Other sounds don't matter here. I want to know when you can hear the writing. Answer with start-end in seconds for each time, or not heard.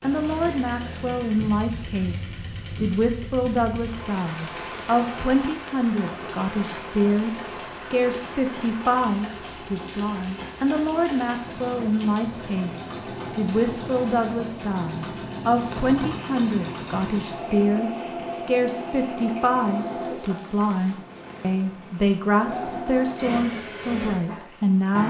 not heard.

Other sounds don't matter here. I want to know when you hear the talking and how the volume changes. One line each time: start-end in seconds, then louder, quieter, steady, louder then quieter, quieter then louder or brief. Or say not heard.
0.0-25.0 steady.